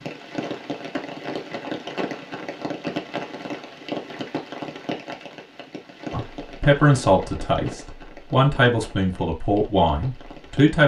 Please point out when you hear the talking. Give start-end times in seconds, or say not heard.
6.1-10.8.